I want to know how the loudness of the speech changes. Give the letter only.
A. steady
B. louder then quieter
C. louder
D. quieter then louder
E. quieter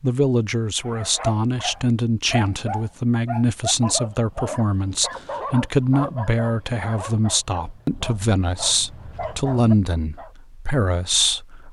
A.